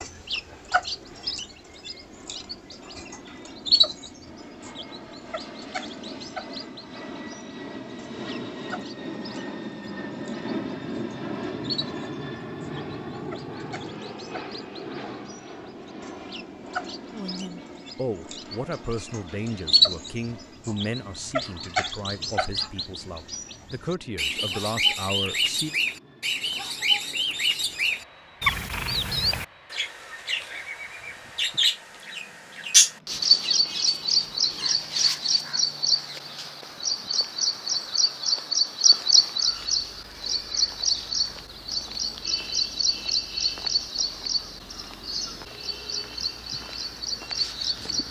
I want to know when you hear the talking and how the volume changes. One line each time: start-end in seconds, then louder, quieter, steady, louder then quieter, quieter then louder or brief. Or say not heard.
17.1-25.8 quieter then louder.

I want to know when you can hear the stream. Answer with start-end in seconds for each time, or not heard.
not heard.